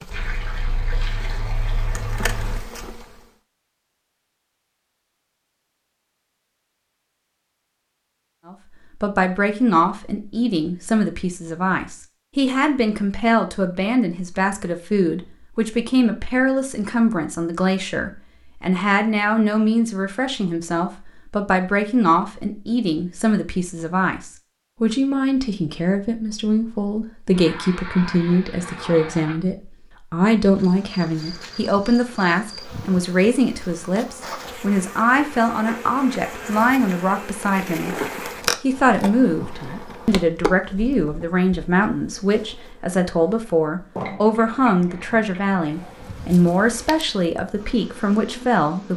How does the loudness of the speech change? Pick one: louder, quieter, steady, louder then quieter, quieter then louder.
steady.